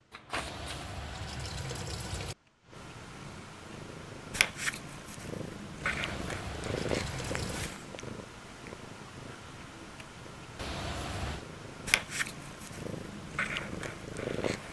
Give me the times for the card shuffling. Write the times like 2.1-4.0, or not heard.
0.1-0.9.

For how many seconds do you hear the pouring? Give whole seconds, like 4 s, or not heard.
5 s.